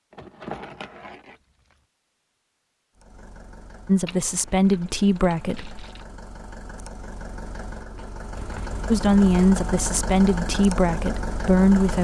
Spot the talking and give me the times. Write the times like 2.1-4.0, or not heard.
3.9-5.8, 8.8-11.9.